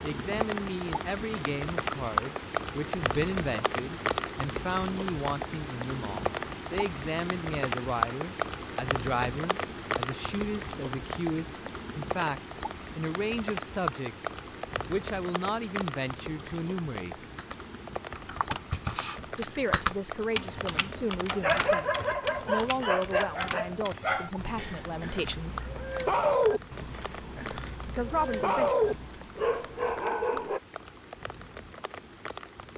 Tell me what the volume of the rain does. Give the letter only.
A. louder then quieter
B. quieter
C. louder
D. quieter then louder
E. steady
B.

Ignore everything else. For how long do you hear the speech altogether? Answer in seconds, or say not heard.
25 s.